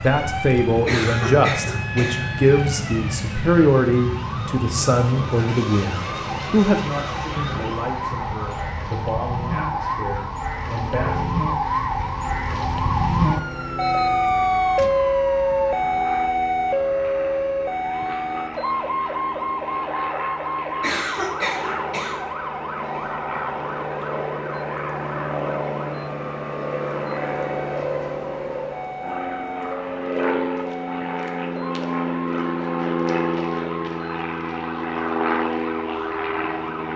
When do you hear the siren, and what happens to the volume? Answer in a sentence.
You can hear the siren from 0.0 to 36.9 s, getting louder then quieter.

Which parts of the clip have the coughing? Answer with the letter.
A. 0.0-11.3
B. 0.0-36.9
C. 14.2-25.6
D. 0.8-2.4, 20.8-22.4
D.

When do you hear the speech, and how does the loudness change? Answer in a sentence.
The speech can be heard from 0.0 to 11.3 s, getting quieter.